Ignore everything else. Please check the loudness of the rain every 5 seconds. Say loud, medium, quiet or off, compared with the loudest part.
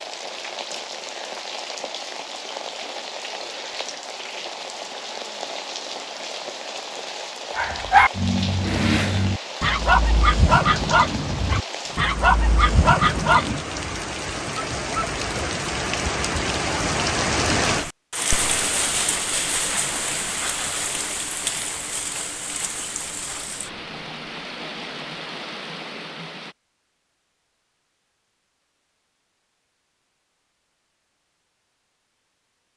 medium, medium, medium, loud, medium, medium, off.